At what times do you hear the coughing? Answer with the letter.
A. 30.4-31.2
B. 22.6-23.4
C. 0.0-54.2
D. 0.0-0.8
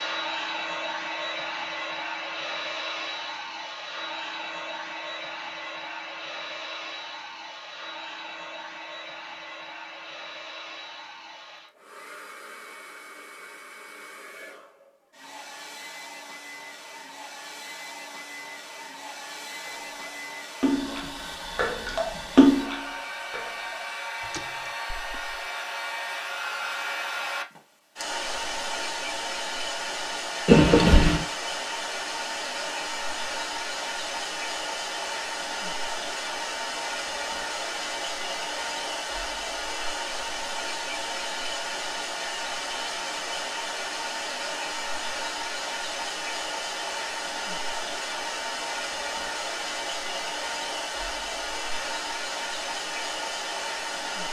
A.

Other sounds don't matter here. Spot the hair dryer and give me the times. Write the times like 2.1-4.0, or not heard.
0.0-54.2.